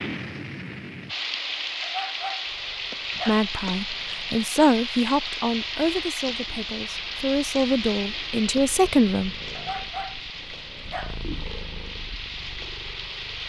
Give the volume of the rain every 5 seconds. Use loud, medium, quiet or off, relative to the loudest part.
loud, loud, medium.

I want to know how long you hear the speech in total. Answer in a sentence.
You can hear the speech for 6 seconds altogether.